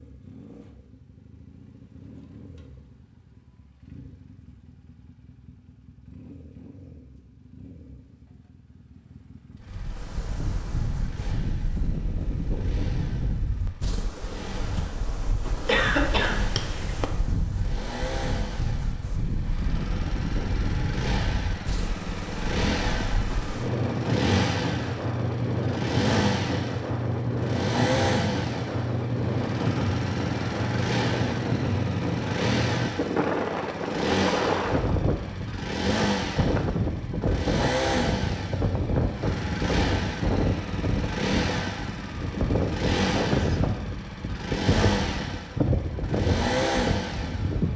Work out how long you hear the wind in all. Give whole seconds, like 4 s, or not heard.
38 s.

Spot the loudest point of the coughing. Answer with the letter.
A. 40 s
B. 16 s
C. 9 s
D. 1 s
B.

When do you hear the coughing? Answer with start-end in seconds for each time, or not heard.
15.7-17.1.